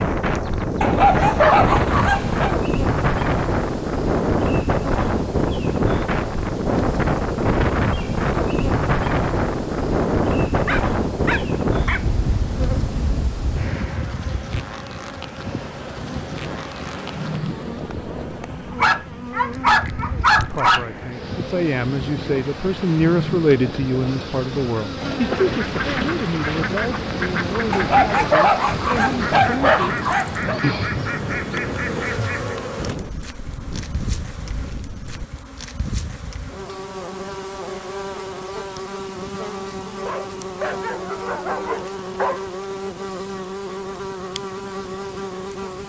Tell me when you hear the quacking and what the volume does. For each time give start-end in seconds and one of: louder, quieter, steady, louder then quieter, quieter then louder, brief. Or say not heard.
25.0-32.6 steady.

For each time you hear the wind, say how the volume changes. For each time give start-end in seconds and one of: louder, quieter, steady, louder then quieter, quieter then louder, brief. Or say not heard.
0.0-35.3 quieter.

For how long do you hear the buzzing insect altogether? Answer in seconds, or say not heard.
46 s.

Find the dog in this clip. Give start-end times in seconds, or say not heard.
0.8-2.5, 10.7-12.1, 18.8-20.9, 27.7-30.6, 40.0-42.5.